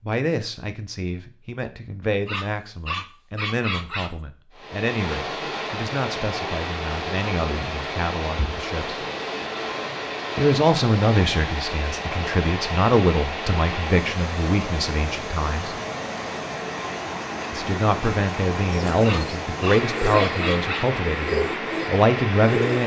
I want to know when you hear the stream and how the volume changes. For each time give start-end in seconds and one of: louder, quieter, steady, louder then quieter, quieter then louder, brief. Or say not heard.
4.5-22.8 steady.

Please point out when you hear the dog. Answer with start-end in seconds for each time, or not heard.
2.2-4.2, 19.0-20.9.